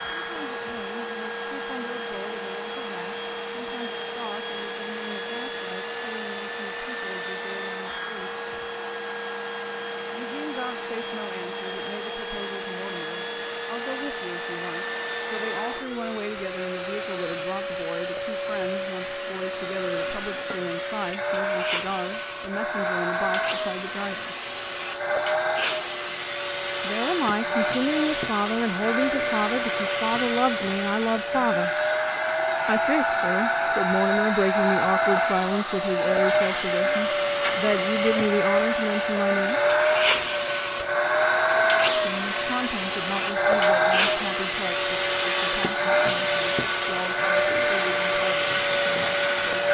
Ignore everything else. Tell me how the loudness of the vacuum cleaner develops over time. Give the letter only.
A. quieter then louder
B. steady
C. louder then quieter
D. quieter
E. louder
E.